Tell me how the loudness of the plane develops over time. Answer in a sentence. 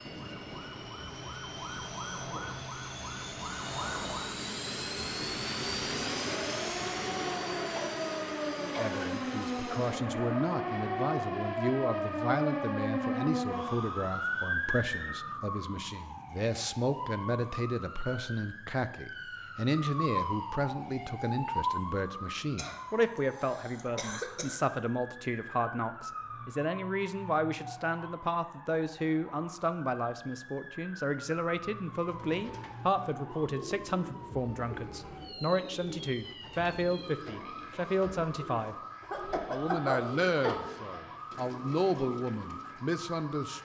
The loudness of the plane goes up, then down.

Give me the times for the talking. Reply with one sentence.
The talking can be heard from 8.6 to 38.8 s and from 39.5 to 43.5 s.